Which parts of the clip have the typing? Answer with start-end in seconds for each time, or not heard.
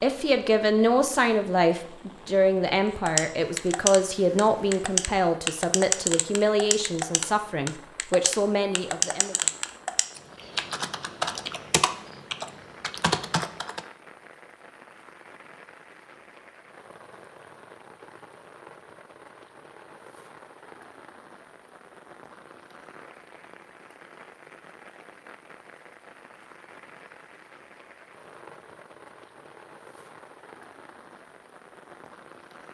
3.0-13.8.